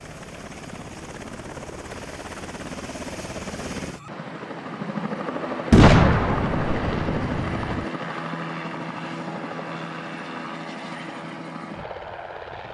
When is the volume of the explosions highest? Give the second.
6 s.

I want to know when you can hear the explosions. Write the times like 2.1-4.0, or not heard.
5.7-7.8.